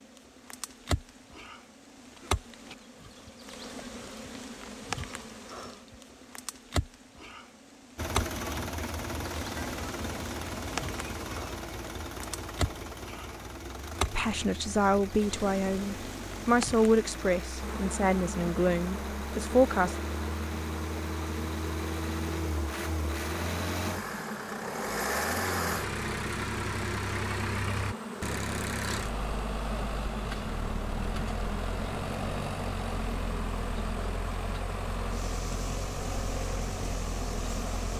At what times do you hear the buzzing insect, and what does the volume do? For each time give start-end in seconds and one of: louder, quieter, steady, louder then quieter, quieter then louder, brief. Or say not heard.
0.0-37.9 steady.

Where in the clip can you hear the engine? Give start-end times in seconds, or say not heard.
8.0-37.9.